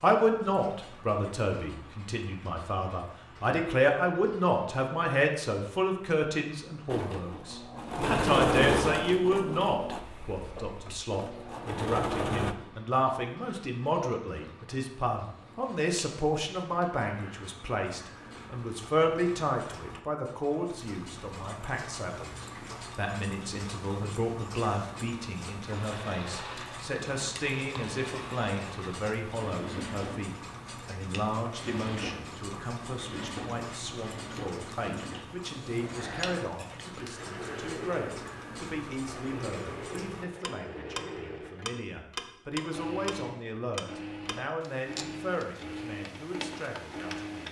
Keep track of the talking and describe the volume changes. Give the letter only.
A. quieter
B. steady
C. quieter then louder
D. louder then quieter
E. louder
A.